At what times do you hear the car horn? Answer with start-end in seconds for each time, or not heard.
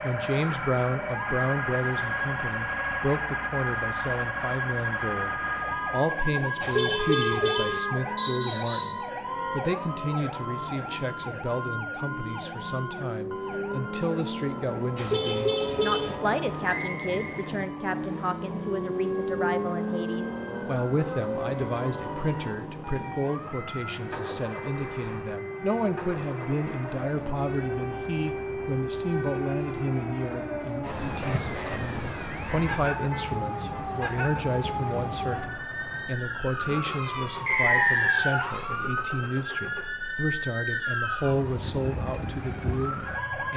6.6-7.8, 14.9-16.1, 32.5-33.9.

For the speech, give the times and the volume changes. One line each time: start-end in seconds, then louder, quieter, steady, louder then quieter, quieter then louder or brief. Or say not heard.
0.0-43.5 steady.